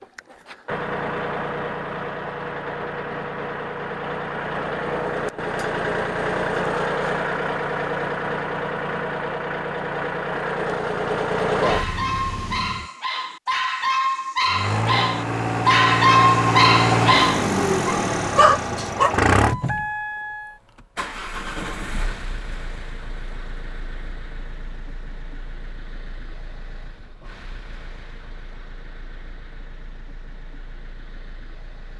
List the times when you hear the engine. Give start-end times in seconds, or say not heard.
0.0-12.8, 14.4-31.9.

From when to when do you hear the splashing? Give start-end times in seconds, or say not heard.
not heard.